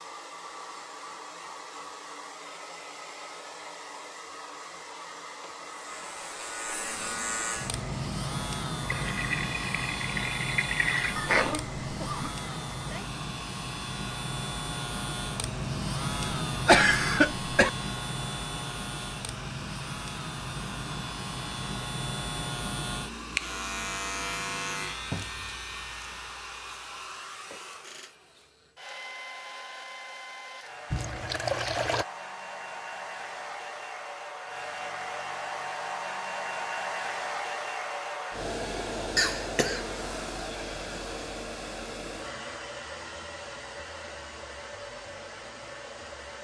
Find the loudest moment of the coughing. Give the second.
17 s.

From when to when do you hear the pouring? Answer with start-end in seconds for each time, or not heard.
8.8-11.2, 30.9-32.0.